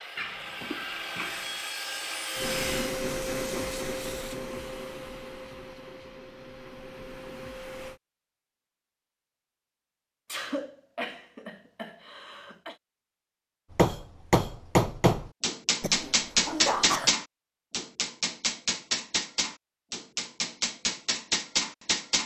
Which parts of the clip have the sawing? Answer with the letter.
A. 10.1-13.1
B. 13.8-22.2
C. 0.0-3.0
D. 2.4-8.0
C.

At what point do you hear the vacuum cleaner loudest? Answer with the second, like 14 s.
3 s.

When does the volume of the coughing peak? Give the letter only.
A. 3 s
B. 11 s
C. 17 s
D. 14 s
C.